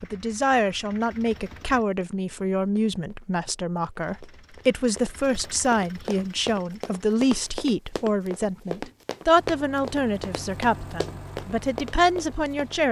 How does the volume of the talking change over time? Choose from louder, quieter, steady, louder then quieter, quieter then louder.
steady.